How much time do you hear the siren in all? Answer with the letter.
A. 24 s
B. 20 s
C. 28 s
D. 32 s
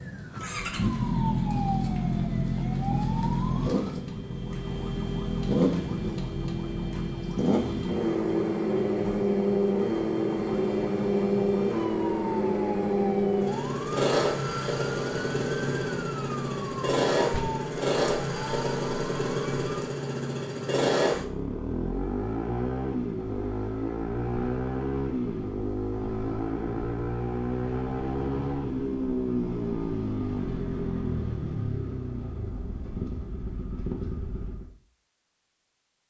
B.